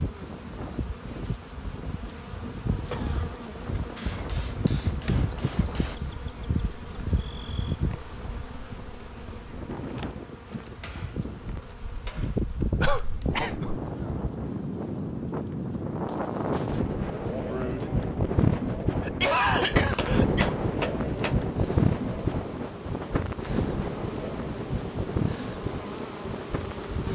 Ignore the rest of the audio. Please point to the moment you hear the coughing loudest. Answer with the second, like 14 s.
19 s.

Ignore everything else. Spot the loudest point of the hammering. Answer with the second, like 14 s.
21 s.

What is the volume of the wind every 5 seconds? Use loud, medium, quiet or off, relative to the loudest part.
quiet, quiet, medium, loud, loud, medium.